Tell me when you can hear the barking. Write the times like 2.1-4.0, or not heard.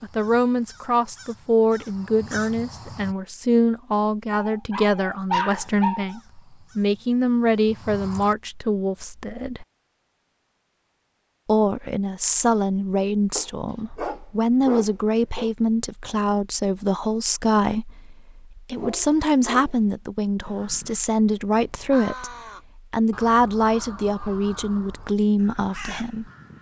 4.3-6.2, 13.3-15.5, 18.8-19.9.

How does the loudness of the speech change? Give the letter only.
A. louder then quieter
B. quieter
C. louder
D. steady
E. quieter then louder
D.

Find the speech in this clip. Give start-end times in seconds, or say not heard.
0.0-9.7, 11.4-26.3.